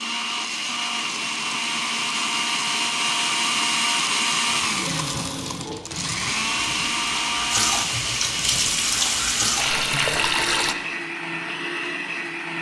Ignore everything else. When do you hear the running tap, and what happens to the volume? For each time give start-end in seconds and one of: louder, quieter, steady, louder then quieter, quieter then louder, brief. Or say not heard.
4.7-10.8 louder.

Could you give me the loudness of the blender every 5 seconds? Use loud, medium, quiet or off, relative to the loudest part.
loud, loud, medium.